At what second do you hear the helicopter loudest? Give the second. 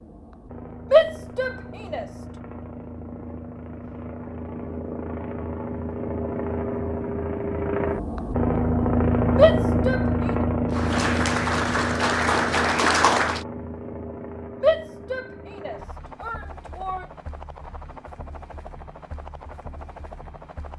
9 s.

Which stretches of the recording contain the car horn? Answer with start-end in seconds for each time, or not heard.
not heard.